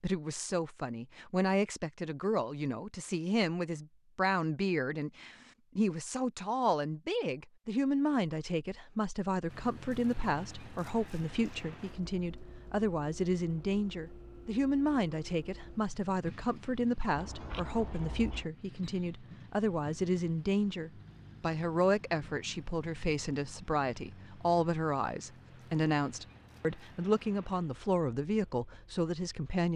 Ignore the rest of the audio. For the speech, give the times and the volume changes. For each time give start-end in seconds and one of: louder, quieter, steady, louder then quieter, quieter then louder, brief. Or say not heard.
0.0-29.7 steady.